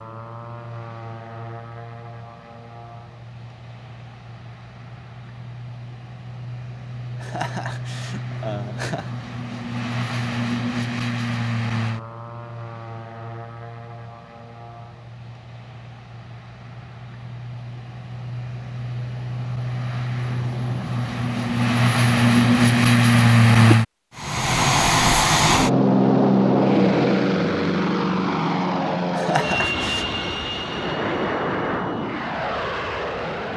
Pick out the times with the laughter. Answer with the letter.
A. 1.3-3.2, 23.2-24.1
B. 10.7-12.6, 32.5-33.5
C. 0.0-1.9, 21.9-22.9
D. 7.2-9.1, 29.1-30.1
D.